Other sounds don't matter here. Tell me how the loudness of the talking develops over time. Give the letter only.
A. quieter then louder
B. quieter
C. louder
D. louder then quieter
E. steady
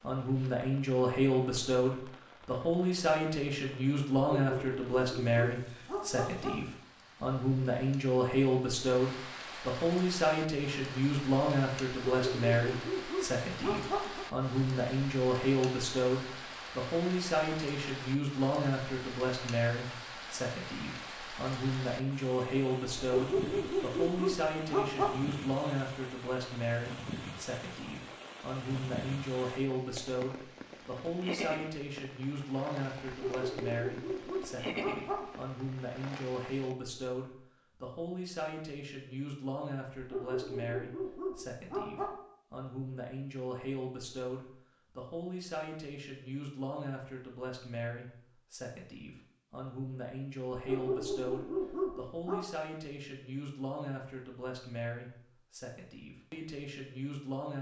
B.